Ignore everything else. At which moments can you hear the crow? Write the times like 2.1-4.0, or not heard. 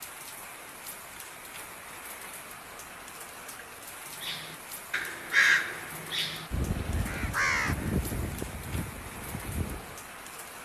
4.2-10.0.